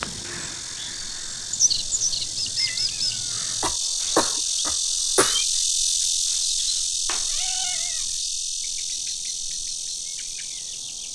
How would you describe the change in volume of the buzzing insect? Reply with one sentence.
The loudness of the buzzing insect goes up, then down.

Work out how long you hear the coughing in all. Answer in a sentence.
You can hear the coughing for 2 seconds altogether.